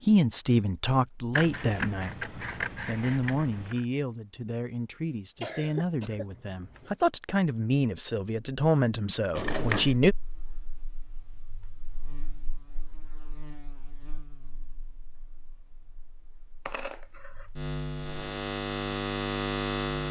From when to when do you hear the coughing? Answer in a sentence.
The coughing can be heard from 5.4 to 7.0 s.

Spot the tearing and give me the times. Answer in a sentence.
You can't hear the tearing here.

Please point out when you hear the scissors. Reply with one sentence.
The scissors can be heard from 1.3 to 3.9 s, from 9.3 to 9.9 s and from 16.6 to 17.5 s.